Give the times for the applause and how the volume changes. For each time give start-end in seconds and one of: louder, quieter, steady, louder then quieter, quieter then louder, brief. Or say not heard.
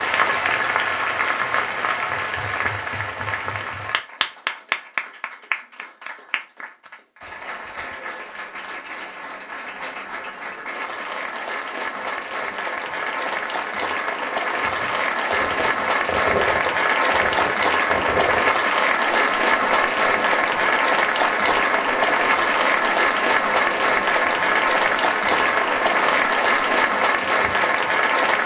0.0-28.4 quieter then louder.